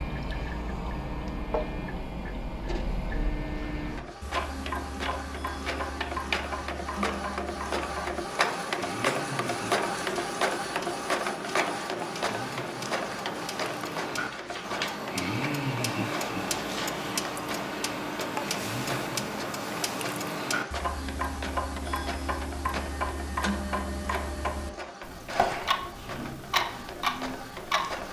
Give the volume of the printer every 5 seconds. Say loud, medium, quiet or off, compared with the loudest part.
medium, loud, loud, medium, medium, medium.